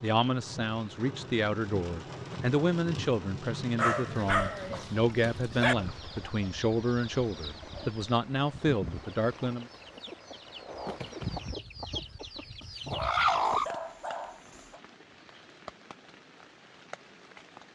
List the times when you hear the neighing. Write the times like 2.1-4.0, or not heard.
not heard.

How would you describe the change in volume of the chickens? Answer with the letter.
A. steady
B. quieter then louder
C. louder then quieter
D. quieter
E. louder
E.